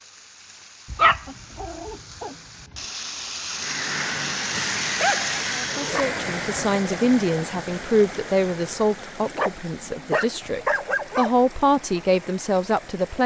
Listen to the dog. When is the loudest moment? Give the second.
1 s.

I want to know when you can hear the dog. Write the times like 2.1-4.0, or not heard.
0.9-2.4, 4.5-6.0, 9.3-11.3.